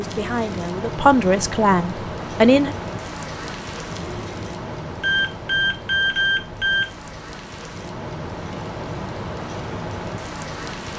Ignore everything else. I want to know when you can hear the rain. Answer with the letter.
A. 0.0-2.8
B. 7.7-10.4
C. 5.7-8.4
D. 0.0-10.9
D.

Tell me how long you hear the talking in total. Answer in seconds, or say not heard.
3 s.